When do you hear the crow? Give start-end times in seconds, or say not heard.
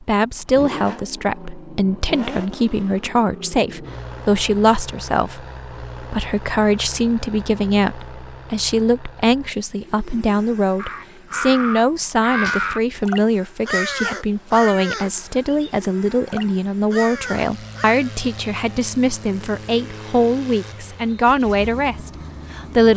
10.8-18.1.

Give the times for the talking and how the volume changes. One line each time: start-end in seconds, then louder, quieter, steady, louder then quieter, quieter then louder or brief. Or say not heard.
0.0-22.9 steady.